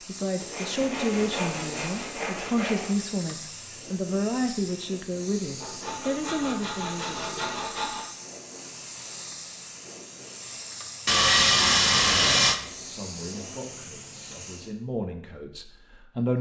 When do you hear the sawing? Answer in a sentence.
You can hear the sawing from 0.4 to 3.0 s, from 5.6 to 8.1 s and from 11.1 to 12.6 s.